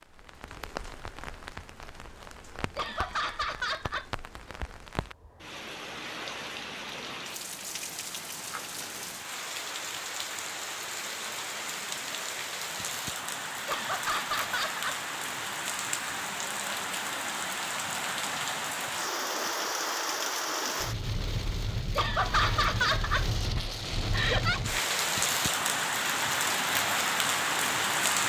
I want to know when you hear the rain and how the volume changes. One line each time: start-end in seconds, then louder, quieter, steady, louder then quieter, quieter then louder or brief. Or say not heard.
0.0-28.2 louder.